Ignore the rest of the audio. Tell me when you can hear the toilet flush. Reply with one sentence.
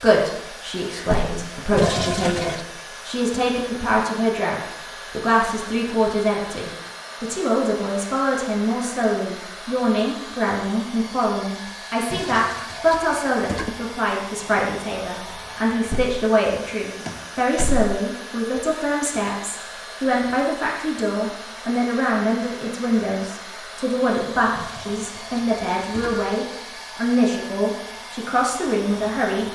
The toilet flush can be heard from 1.8 to 2.6 s, from 12.1 to 13.9 s and from 24.6 to 26.4 s.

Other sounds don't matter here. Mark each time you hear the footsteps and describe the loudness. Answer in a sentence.
The footsteps can't be heard in this clip.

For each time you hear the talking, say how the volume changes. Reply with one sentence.
The talking can be heard from 0.0 to 29.5 s, at a steady volume.